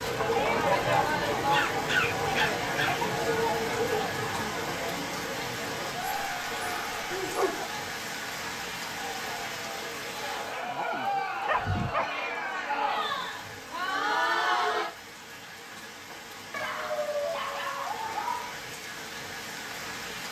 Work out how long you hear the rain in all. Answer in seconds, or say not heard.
20 s.